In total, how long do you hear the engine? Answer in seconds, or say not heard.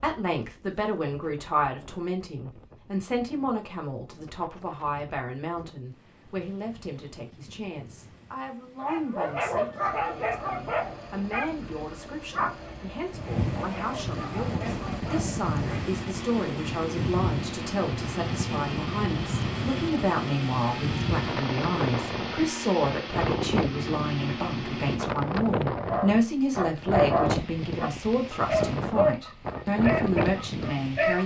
15 s.